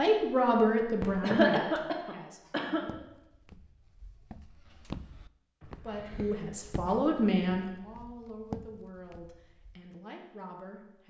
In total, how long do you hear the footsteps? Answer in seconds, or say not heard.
7 s.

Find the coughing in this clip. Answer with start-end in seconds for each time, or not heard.
1.0-2.9, 5.6-7.1.